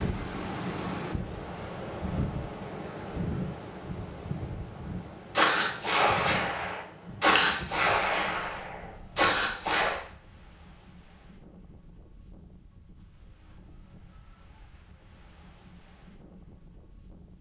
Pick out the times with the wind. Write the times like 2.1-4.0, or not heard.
0.0-17.3.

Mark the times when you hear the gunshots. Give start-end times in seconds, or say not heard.
5.3-10.0.